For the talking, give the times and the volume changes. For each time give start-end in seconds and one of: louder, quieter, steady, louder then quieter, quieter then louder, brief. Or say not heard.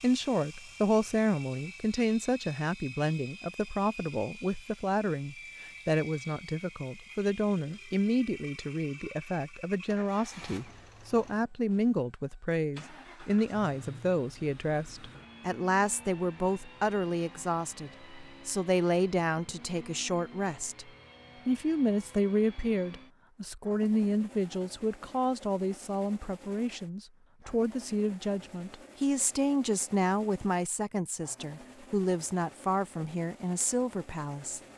0.0-34.6 steady.